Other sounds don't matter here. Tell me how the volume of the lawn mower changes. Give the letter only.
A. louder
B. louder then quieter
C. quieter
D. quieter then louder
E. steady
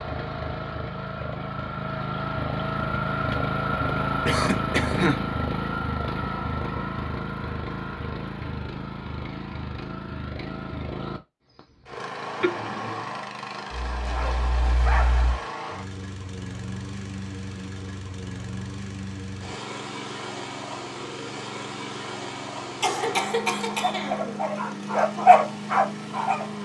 C.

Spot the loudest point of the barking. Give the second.
25 s.